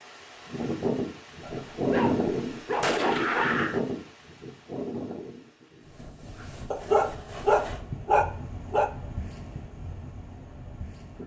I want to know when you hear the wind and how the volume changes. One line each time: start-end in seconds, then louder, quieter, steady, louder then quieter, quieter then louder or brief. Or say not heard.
0.0-11.2 quieter.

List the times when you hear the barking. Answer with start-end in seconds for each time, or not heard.
1.4-3.4, 6.7-8.9.